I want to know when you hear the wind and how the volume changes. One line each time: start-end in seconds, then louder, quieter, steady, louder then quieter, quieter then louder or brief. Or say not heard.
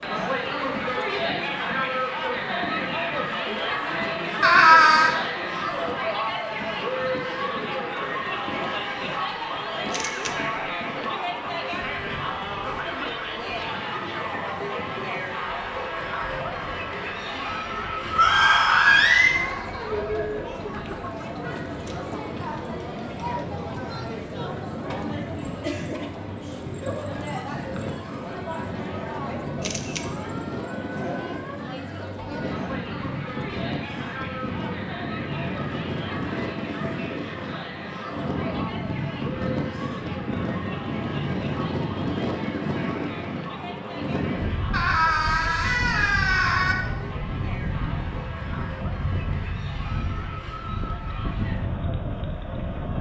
0.0-52.9 louder.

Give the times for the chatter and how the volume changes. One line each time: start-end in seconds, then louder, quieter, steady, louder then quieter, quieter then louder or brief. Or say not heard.
0.0-52.9 quieter.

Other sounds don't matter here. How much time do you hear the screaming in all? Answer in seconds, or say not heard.
4 s.